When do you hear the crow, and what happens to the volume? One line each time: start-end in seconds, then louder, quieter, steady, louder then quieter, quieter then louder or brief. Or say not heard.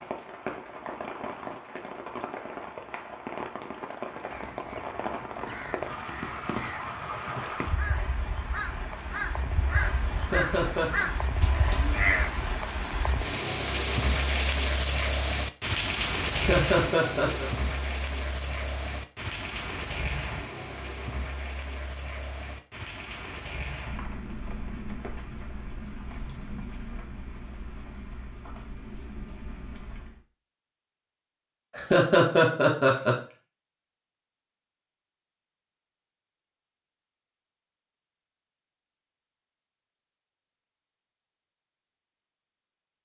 4.2-12.5 louder.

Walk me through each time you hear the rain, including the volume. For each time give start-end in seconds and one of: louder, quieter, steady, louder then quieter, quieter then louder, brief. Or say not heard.
0.0-30.2 louder then quieter.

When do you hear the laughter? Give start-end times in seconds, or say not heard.
10.2-11.1, 16.3-17.5, 31.8-33.1.